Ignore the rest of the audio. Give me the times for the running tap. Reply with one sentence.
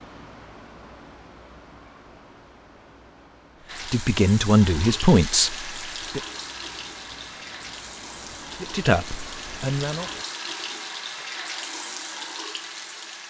The running tap can be heard from 3.6 to 13.2 s.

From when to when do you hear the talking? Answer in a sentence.
The talking can be heard from 3.9 to 6.2 s and from 8.4 to 10.1 s.